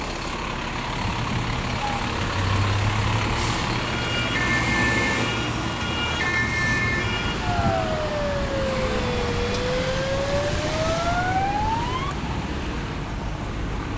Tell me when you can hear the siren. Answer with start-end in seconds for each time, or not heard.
1.8-12.2.